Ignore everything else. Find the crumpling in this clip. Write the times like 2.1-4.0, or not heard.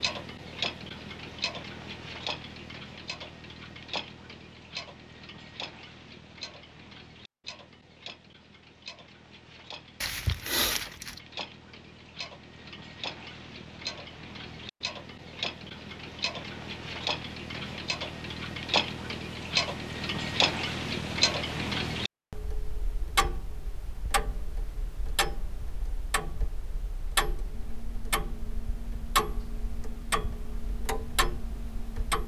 10.0-11.2.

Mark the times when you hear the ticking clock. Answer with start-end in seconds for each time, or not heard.
0.0-32.2.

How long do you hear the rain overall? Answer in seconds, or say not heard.
not heard.